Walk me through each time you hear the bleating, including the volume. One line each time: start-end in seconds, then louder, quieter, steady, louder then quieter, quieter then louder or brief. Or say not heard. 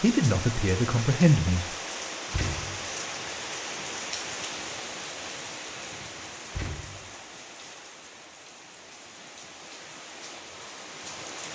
not heard.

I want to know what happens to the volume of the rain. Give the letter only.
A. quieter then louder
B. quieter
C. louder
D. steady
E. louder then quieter
B.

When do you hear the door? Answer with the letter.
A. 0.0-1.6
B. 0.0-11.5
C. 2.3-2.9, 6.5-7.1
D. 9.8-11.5
C.